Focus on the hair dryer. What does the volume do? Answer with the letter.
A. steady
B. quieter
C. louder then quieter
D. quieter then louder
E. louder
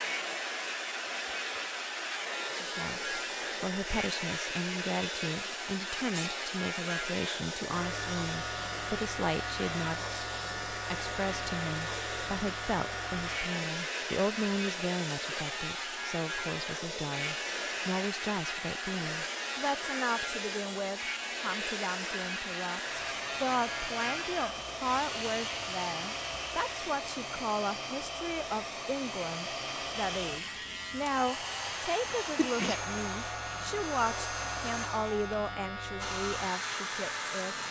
A.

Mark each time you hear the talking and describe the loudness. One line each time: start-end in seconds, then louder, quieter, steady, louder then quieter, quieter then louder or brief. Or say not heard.
2.6-37.6 steady.